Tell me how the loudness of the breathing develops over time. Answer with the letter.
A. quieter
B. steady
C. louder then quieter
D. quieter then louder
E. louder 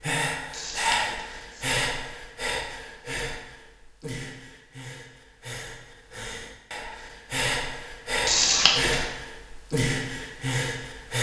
D.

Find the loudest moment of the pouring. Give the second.
9 s.